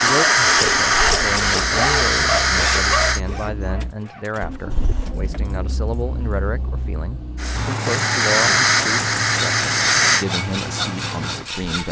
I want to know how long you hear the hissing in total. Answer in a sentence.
The hissing can be heard for 6 seconds in total.